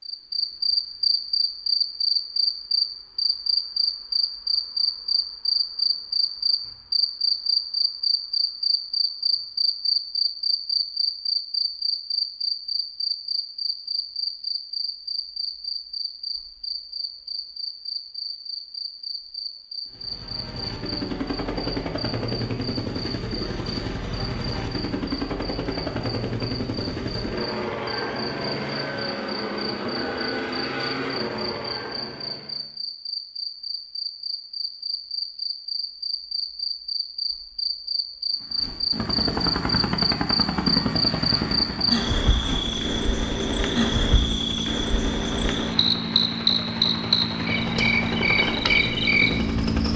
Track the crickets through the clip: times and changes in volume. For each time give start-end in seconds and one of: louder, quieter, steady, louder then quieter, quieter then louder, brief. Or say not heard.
0.0-49.9 quieter then louder.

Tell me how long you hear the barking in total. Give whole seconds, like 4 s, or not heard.
not heard.